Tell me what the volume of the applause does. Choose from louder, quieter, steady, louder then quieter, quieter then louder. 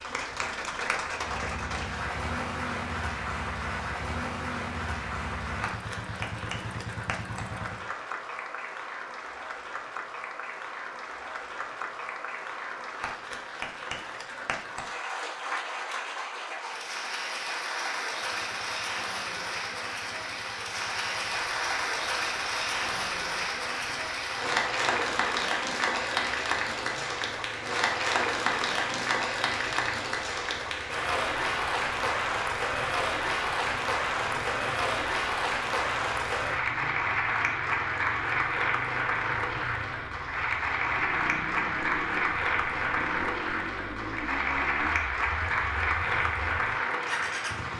louder.